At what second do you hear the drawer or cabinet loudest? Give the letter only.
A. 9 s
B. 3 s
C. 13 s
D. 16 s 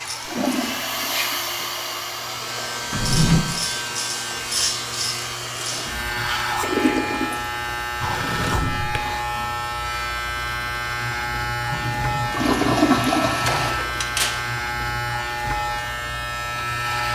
B.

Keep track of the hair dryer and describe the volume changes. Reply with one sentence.
The volume of the hair dryer goes down.